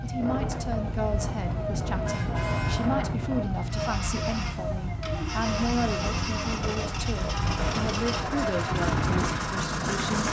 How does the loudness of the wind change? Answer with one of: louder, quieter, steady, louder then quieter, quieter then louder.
quieter then louder.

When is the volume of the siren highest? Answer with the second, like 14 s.
9 s.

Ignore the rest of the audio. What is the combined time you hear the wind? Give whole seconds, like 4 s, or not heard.
10 s.